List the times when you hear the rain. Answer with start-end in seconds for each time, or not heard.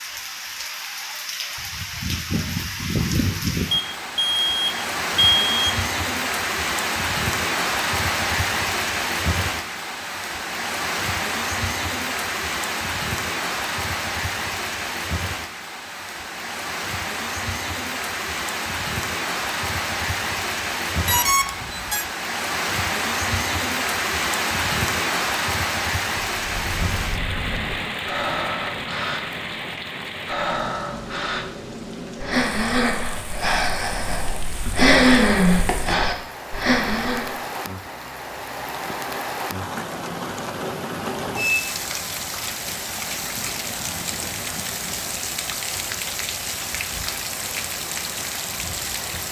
0.0-49.2.